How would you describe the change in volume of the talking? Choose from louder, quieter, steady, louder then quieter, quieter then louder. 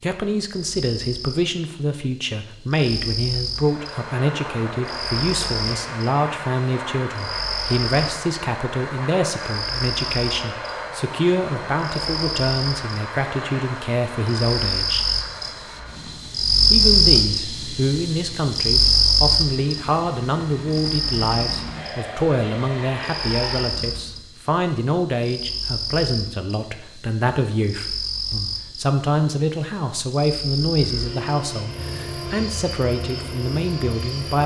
steady.